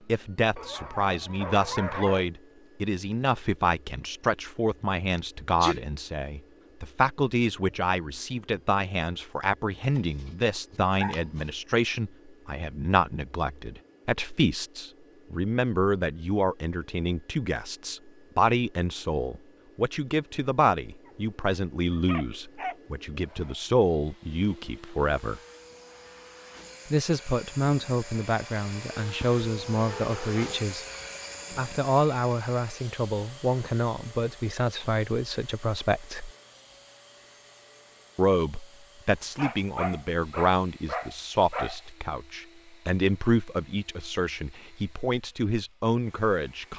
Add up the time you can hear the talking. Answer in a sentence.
The talking can be heard for 43 seconds in total.